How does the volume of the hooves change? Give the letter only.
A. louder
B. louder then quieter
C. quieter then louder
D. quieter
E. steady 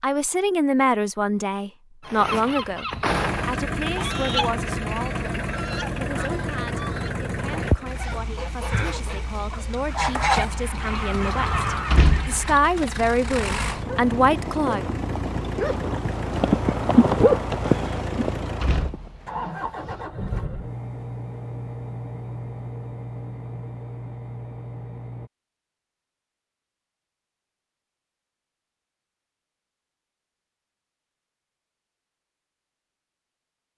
B.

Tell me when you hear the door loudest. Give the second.
12 s.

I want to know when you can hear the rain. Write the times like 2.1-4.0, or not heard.
not heard.